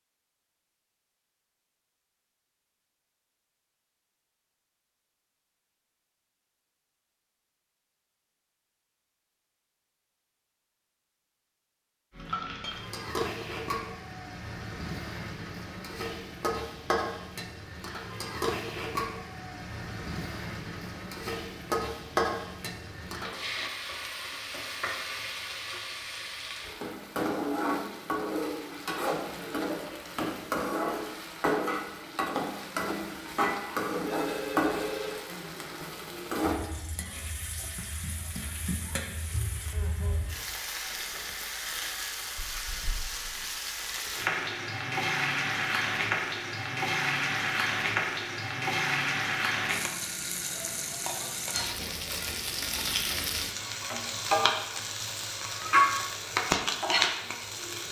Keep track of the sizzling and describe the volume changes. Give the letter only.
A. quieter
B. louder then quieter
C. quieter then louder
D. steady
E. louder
E.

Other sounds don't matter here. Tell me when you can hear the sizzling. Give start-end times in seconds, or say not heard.
12.2-57.8.